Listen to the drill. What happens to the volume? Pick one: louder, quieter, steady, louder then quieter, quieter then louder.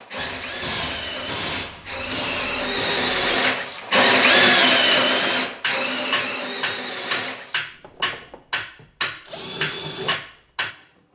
louder then quieter.